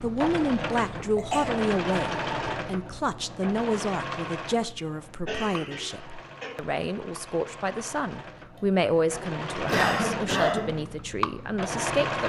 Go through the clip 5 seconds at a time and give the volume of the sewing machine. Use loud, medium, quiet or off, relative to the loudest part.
loud, medium, loud.